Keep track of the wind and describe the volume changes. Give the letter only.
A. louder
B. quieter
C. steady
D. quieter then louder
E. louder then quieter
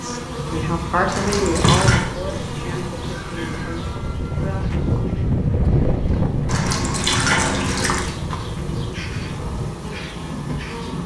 E.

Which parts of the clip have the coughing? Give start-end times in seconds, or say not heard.
not heard.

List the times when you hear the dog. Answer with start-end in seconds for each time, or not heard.
not heard.